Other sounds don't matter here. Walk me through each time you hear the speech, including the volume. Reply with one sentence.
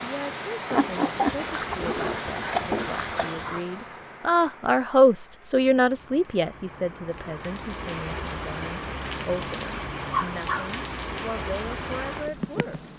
You can hear the speech from 0.0 to 12.9 s, getting louder then quieter.